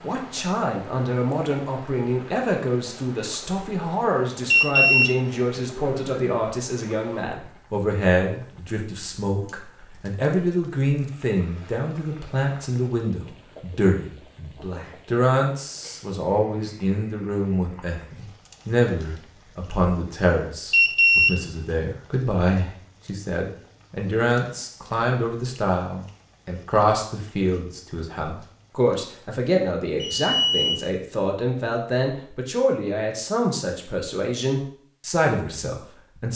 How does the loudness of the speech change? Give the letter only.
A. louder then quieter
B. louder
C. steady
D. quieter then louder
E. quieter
C.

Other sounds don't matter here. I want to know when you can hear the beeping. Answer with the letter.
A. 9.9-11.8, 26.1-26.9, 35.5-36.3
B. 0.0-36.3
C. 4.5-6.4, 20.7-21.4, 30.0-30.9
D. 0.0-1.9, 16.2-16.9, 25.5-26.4
C.